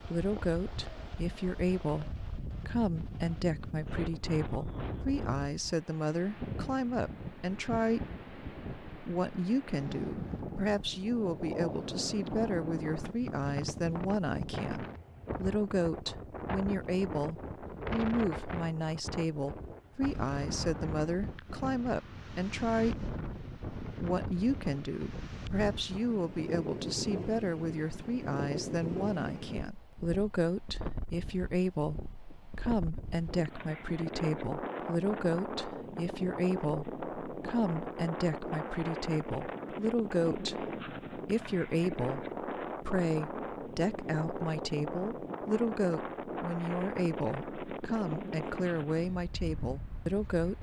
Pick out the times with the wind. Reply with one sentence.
The wind can be heard from 0.0 to 50.5 s.